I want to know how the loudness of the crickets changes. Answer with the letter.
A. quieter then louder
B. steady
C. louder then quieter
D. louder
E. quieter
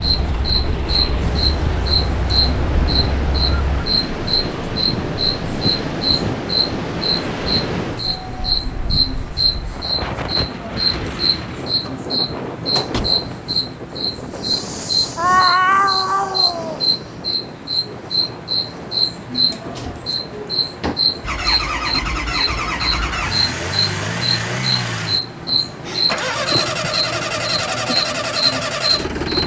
B.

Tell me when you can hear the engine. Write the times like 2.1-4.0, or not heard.
0.0-3.8, 21.2-29.4.